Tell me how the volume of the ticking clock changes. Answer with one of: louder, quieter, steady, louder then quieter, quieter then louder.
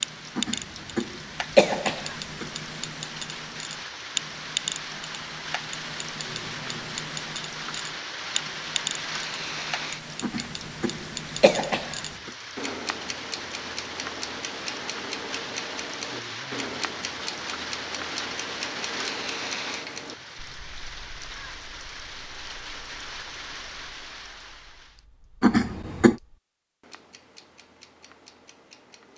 quieter.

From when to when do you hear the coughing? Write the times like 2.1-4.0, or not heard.
0.3-2.5, 10.2-12.3, 25.4-26.2.